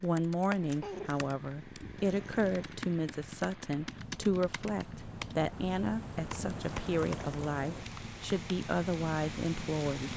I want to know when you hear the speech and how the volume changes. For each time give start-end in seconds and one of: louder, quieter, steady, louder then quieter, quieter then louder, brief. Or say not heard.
0.0-10.1 steady.